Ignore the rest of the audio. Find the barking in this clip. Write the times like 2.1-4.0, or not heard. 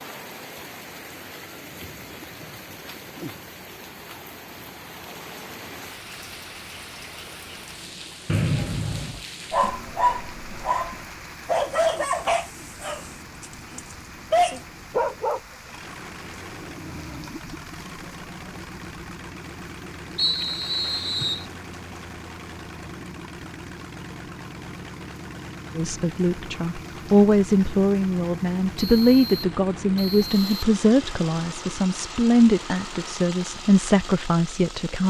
9.5-15.4.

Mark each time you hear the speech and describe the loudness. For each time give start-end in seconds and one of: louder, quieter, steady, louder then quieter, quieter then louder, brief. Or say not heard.
25.8-35.0 steady.